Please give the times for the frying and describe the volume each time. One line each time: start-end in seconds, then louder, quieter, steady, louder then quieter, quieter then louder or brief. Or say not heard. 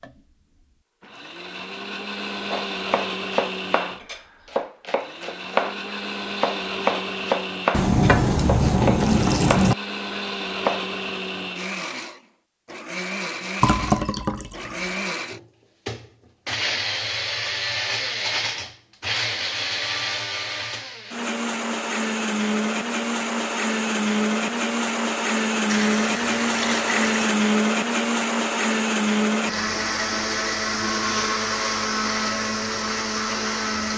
not heard.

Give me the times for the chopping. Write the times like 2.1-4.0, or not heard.
2.5-10.8.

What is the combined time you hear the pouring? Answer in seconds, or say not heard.
5 s.